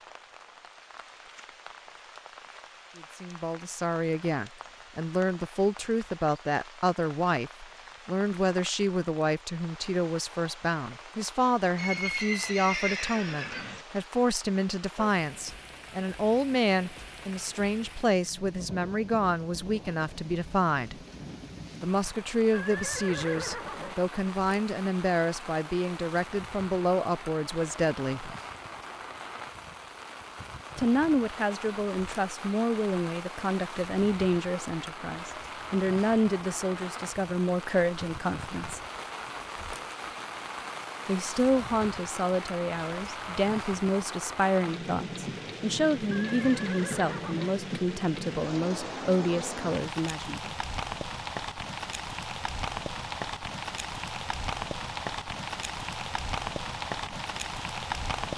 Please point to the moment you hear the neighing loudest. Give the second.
13 s.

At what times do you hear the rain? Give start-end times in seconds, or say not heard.
0.0-58.3.